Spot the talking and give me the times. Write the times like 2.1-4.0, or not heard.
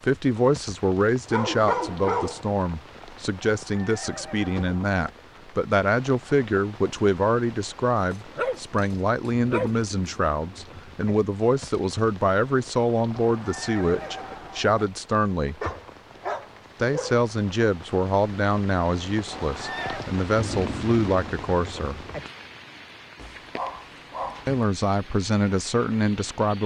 0.0-15.6, 16.8-22.0, 24.4-26.6.